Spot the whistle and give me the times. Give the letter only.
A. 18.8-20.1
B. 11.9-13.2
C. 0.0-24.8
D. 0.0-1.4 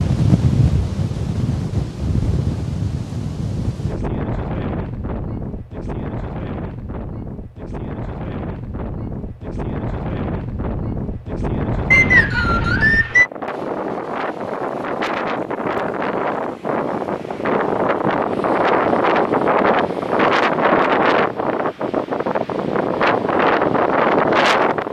B.